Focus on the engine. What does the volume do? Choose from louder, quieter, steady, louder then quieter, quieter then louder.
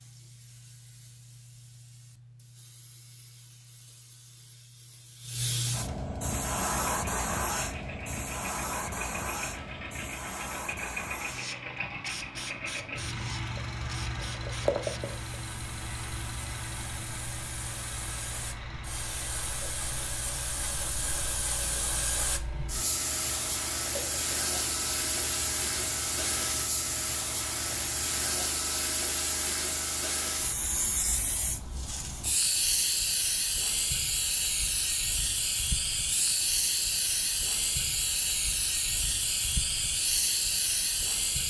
louder then quieter.